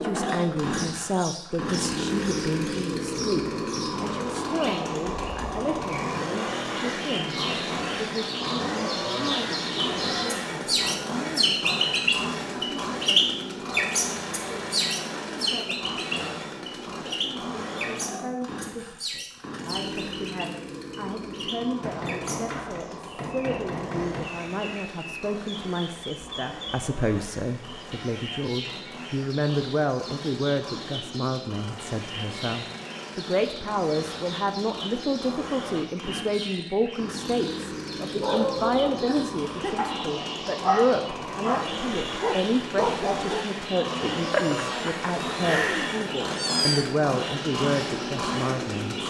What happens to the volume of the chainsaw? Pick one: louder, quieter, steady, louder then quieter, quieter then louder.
quieter then louder.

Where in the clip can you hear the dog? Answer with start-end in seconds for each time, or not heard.
38.2-43.4.